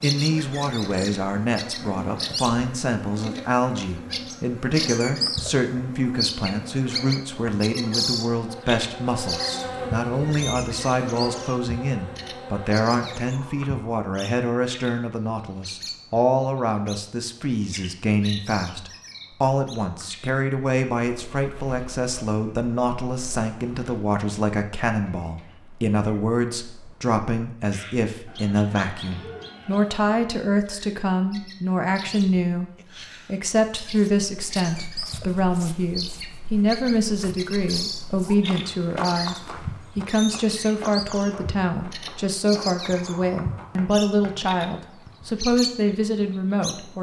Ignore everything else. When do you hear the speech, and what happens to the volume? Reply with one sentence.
The speech can be heard from 0.0 to 46.9 s, at a steady volume.